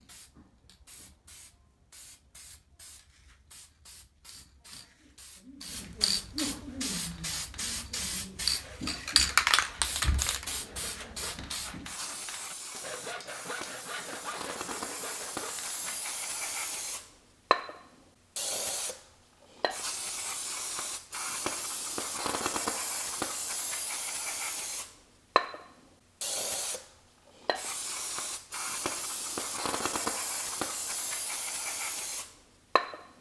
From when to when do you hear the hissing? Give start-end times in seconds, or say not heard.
0.0-33.1.